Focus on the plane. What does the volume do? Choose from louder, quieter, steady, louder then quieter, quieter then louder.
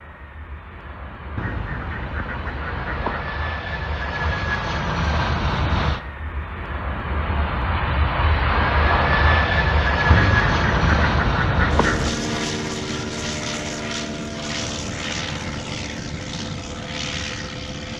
louder then quieter.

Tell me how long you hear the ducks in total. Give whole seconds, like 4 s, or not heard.
4 s.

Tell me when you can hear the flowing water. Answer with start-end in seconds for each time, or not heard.
not heard.